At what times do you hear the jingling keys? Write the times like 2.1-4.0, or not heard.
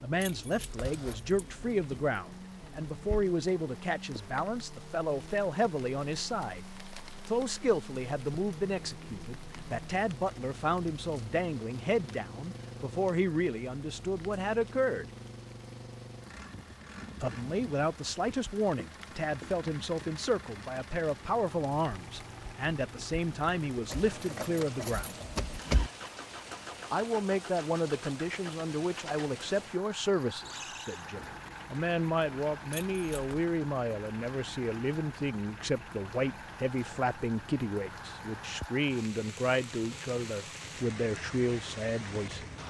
0.2-2.1, 23.9-25.9, 32.7-33.4.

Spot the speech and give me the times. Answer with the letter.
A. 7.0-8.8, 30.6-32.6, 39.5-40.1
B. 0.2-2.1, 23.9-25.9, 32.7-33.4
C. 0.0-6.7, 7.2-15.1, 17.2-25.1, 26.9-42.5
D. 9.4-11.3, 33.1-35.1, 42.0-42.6
C.